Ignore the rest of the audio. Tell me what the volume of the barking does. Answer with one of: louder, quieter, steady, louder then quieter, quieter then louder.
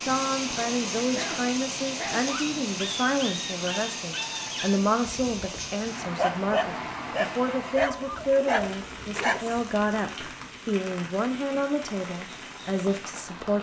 quieter then louder.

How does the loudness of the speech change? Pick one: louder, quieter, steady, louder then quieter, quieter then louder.
steady.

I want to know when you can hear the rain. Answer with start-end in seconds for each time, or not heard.
0.0-13.5.